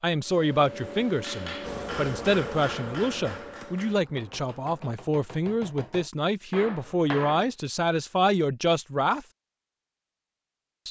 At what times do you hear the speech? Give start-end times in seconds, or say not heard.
0.0-9.2.